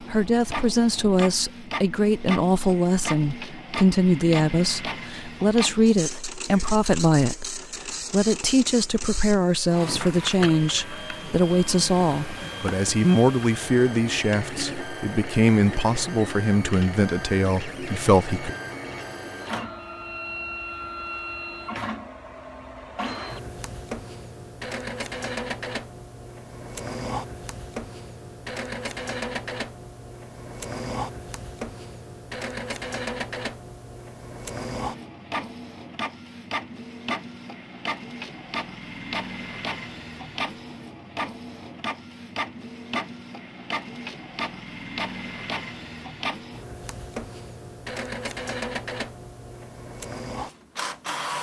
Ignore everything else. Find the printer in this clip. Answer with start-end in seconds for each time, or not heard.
0.0-51.3.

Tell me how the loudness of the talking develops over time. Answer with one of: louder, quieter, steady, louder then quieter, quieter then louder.
steady.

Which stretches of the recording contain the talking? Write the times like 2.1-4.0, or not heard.
0.1-18.6.